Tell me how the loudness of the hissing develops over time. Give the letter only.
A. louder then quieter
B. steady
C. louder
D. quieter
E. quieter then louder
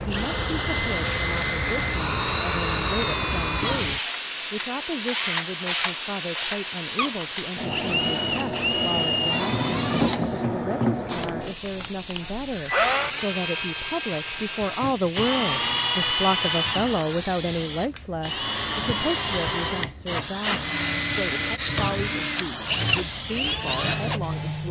B.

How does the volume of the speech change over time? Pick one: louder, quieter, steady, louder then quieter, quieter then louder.
louder then quieter.